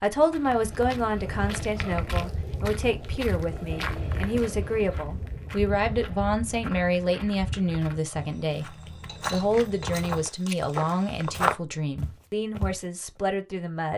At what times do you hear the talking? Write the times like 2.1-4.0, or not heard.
0.0-8.7, 9.3-13.9.